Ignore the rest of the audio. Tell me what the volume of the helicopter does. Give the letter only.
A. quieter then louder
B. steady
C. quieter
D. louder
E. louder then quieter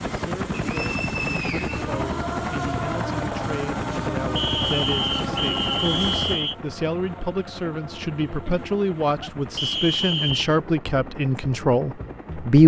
C.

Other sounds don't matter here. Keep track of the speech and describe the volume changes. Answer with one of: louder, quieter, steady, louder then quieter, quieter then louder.
louder.